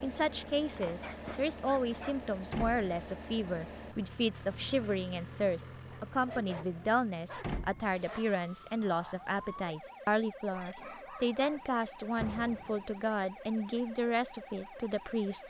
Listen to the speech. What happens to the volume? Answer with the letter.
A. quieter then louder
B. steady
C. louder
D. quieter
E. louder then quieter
B.